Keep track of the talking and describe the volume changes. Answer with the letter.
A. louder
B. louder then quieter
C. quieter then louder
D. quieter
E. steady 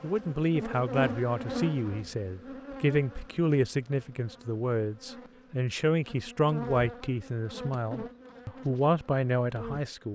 E.